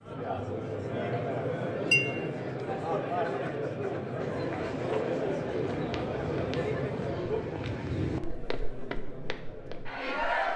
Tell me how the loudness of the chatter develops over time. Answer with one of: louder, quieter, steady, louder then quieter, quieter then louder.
quieter.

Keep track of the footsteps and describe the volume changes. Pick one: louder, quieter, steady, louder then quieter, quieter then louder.
louder then quieter.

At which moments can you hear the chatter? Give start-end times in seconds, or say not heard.
0.0-10.5.